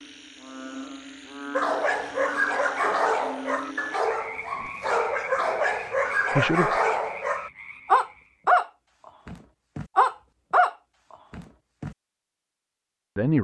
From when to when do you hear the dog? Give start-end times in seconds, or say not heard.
1.6-8.7, 9.2-11.9.